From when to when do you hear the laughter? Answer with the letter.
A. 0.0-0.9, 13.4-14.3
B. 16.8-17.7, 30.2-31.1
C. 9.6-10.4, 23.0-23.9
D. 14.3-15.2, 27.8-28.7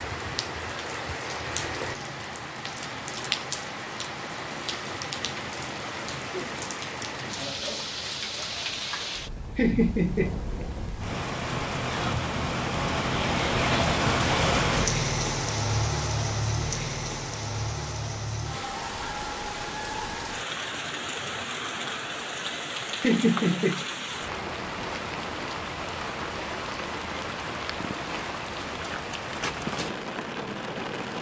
C.